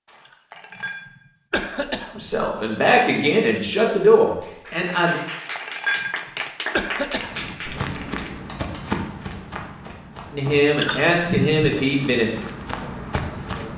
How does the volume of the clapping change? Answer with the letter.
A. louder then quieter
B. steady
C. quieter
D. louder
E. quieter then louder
A.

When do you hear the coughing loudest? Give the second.
11 s.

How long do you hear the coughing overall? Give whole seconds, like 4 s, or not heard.
4 s.